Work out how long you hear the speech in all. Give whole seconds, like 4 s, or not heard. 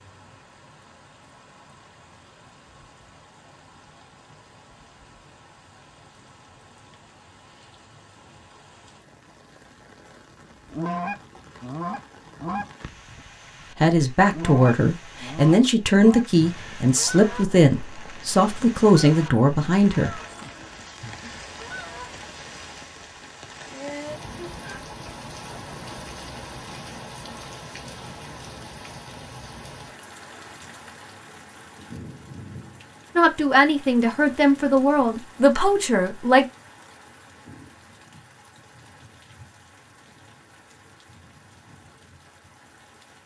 10 s.